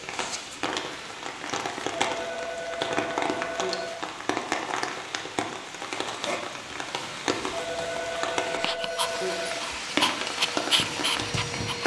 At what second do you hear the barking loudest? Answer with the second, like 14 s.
11 s.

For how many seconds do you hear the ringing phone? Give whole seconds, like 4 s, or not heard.
4 s.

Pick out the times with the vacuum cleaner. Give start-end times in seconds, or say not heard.
8.8-11.8.